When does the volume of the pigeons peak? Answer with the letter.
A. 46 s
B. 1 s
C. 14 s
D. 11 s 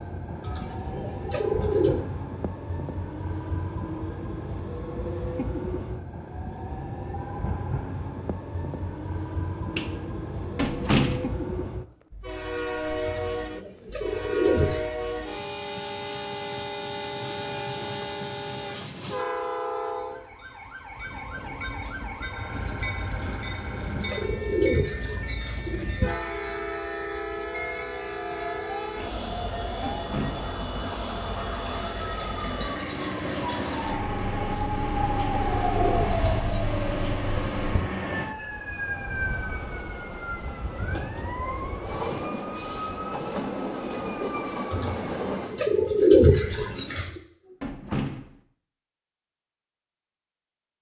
A.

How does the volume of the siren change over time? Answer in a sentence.
The volume of the siren goes up, then down.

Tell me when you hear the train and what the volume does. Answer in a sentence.
You can hear the train from 0.0 to 45.6 s, at a steady volume.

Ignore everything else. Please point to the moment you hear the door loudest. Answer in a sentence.
The loudest moment of the door is at 11 seconds.